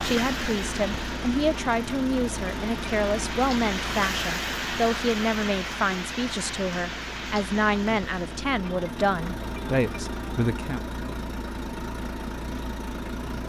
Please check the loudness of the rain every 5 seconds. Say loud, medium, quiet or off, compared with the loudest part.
loud, loud, off.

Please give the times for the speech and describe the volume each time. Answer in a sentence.
You can hear the speech from 0.0 to 10.8 s, at a steady volume.